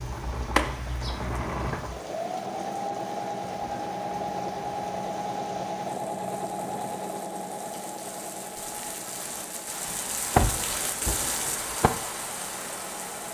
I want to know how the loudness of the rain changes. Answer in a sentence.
The loudness of the rain goes up.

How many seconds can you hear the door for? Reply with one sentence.
The door can be heard for 3 seconds in total.